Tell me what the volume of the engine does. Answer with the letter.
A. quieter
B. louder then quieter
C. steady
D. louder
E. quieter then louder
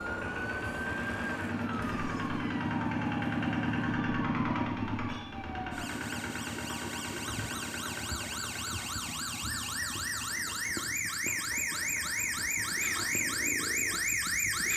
A.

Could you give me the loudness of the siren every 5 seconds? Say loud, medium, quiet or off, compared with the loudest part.
medium, medium, loud.